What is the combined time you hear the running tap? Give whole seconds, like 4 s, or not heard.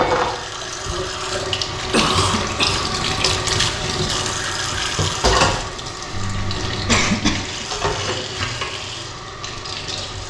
10 s.